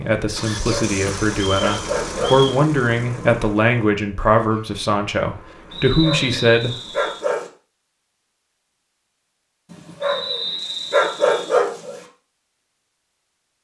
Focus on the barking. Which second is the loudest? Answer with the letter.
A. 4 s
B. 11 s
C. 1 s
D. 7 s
B.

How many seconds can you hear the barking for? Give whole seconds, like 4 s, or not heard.
6 s.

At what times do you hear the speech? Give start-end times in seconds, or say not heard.
0.0-7.0.